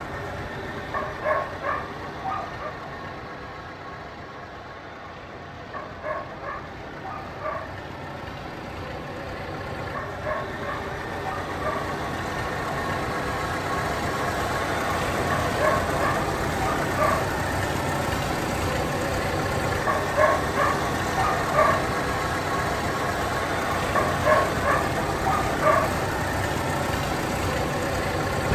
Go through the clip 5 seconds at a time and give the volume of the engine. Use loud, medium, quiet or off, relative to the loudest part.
medium, medium, loud, loud, loud, loud.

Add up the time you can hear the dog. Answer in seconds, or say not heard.
12 s.